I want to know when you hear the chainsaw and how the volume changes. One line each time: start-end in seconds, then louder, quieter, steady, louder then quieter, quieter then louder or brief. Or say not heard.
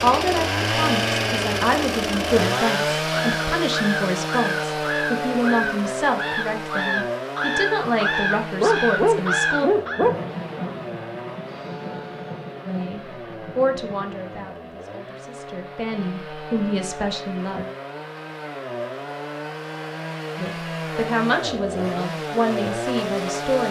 0.0-23.6 quieter then louder.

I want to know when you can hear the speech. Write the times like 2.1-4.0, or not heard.
0.0-9.7, 12.7-17.6, 20.4-23.6.